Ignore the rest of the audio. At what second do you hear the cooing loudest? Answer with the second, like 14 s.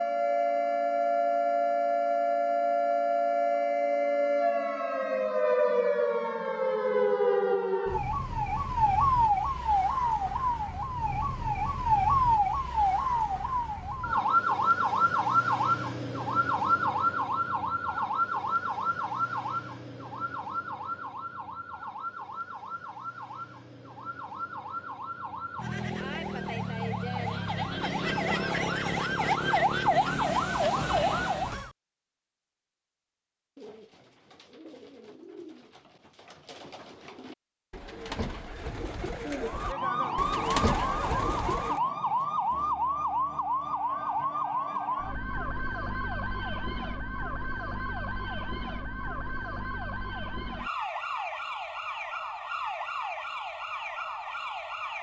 41 s.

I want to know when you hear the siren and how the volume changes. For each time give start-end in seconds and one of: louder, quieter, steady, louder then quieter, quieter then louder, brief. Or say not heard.
0.0-31.7 quieter then louder
39.4-54.9 quieter.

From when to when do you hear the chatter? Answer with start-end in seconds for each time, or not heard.
not heard.